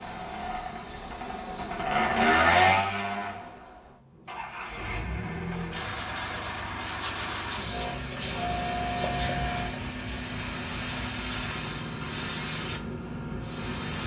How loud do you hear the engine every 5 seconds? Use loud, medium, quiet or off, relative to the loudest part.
loud, medium, medium.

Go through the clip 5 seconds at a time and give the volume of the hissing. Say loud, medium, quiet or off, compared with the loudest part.
quiet, loud, loud.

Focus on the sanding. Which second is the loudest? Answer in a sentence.
The loudest moment of the sanding is at 7 seconds.